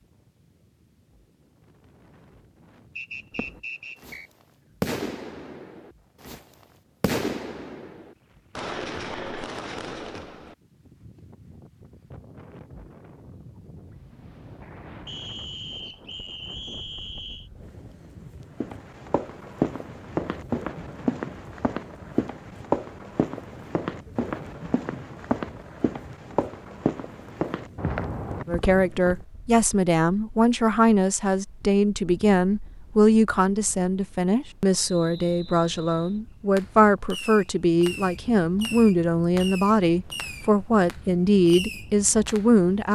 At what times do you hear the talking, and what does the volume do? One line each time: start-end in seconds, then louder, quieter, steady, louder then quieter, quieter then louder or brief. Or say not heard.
28.4-42.9 steady.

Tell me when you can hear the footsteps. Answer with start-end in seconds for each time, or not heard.
18.6-29.2.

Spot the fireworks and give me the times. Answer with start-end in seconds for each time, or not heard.
3.3-4.2, 4.8-10.6, 36.5-42.9.